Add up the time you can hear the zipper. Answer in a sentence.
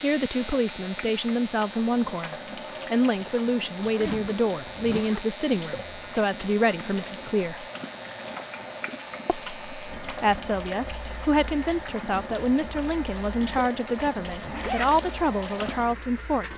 The zipper can be heard for 3 seconds in total.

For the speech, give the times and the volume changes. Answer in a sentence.
The speech can be heard from 0.0 to 7.7 s, at a steady volume; and from 9.2 to 16.5 s, at a steady volume.